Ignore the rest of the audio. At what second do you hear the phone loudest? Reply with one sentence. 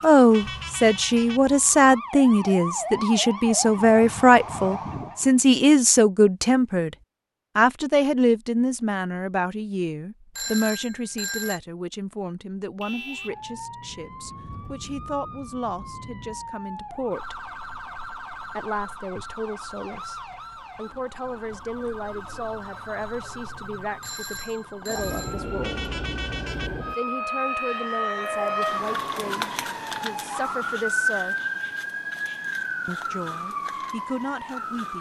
The loudest moment of the phone is at 11 seconds.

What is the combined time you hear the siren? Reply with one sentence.
You can hear the siren for 27 seconds altogether.